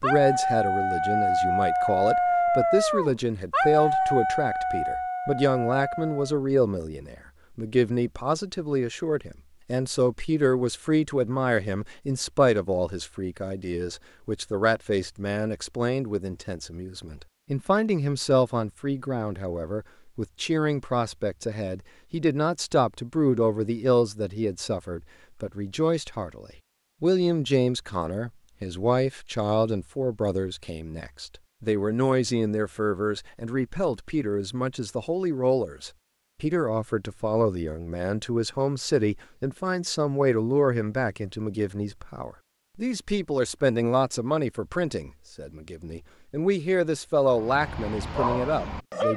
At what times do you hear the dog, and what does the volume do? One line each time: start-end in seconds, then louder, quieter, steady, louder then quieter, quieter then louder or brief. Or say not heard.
0.0-6.4 quieter
47.2-49.1 brief.